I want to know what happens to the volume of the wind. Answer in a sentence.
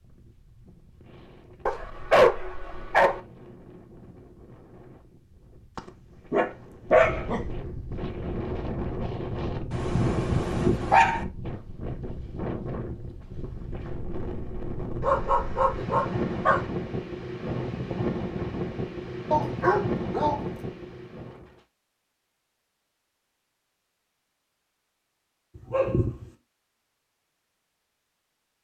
The volume of the wind goes up.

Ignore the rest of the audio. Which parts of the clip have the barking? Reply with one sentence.
You can hear the barking from 1.6 to 3.2 s, from 5.8 to 7.5 s, from 9.7 to 11.2 s, from 15.0 to 16.7 s, from 19.3 to 20.4 s and from 25.6 to 26.3 s.